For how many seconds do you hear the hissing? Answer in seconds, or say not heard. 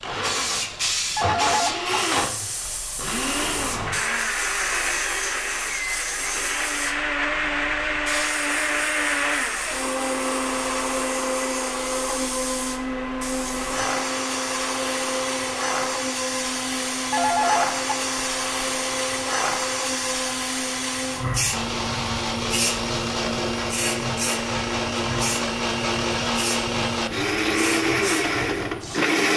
29 s.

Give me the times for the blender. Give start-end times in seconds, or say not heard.
0.0-29.3.